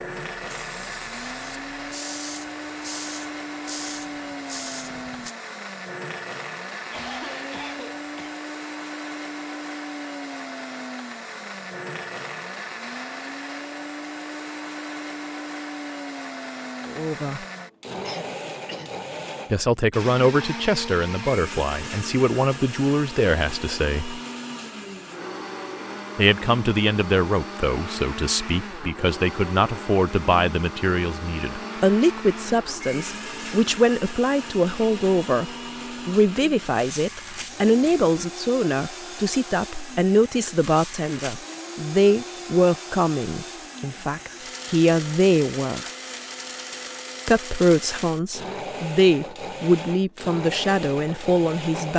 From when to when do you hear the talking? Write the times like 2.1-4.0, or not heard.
16.9-17.4, 19.5-24.2, 26.1-45.9, 47.2-51.9.